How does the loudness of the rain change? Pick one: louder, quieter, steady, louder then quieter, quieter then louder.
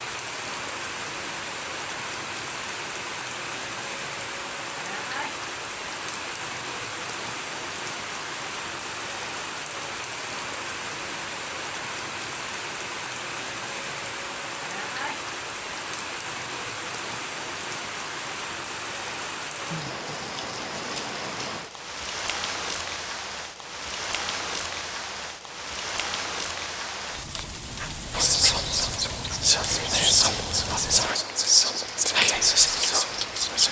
steady.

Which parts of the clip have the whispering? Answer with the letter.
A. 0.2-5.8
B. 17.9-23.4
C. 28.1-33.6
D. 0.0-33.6
C.